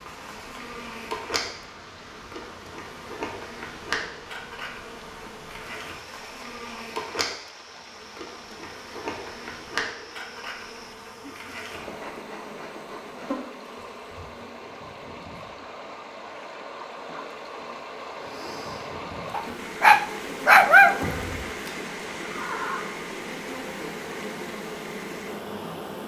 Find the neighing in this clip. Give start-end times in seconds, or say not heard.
22.2-22.9.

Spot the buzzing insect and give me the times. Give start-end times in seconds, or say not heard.
0.0-26.0.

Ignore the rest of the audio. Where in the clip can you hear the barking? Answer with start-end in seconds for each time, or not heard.
19.3-21.0.